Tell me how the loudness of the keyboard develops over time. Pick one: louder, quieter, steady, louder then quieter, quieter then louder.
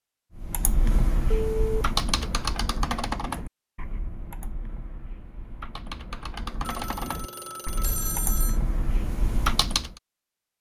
quieter then louder.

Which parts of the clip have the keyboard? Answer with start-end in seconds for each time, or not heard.
0.3-9.9.